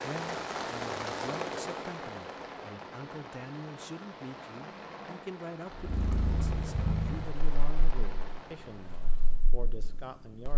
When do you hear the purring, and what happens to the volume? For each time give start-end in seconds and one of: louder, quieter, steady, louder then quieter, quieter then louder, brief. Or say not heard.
5.8-10.5 quieter.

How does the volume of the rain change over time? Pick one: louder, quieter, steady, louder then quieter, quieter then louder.
quieter.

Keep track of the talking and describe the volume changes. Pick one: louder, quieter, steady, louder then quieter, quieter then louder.
steady.